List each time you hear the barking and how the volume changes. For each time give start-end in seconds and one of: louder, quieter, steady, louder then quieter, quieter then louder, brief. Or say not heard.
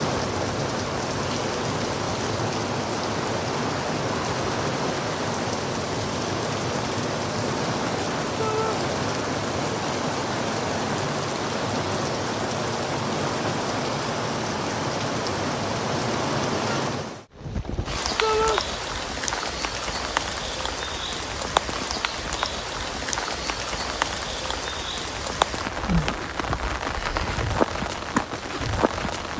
not heard.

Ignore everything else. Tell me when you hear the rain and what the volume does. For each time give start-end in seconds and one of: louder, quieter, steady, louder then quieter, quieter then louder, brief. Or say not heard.
0.0-29.3 steady.